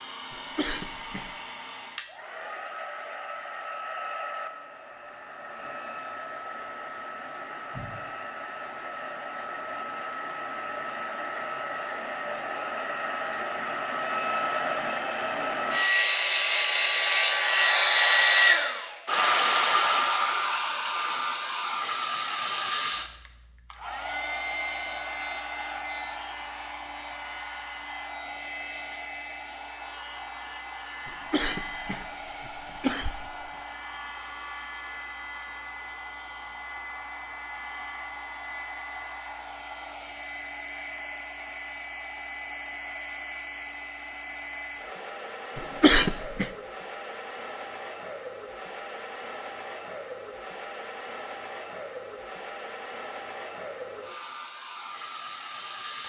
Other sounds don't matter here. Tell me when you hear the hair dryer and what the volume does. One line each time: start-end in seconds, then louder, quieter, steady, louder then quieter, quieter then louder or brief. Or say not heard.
0.0-56.0 louder then quieter.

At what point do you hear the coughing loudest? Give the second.
46 s.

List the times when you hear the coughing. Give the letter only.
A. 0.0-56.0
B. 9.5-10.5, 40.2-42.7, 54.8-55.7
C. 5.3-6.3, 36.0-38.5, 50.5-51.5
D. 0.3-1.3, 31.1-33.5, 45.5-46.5
D.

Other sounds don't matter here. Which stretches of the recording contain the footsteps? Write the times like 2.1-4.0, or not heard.
not heard.